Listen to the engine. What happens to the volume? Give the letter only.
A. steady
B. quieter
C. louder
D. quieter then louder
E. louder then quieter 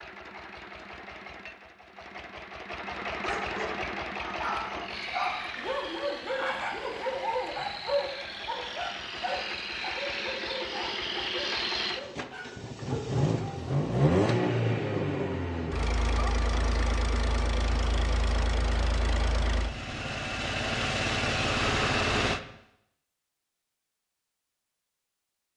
C.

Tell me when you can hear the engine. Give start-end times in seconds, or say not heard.
0.0-22.4.